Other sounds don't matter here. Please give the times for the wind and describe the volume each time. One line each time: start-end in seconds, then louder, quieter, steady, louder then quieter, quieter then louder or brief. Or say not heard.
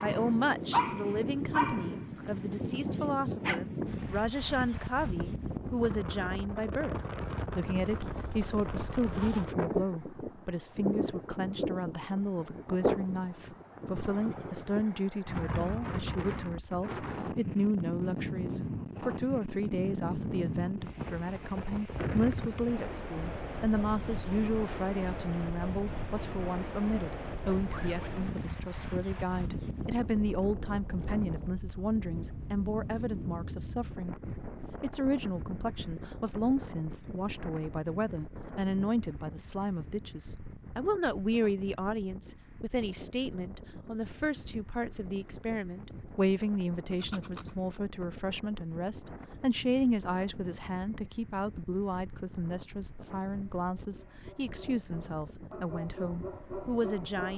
0.0-57.3 quieter.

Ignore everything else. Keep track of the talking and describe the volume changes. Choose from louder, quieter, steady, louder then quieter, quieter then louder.
steady.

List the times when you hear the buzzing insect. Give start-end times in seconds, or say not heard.
not heard.